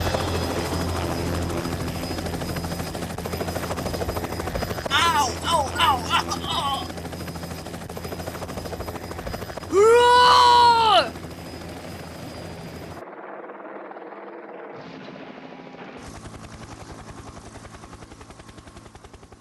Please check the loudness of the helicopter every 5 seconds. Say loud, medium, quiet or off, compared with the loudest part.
loud, medium, medium, quiet.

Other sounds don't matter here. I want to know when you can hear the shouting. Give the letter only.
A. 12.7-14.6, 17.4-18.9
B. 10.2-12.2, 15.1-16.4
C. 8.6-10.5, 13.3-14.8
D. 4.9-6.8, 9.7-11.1
D.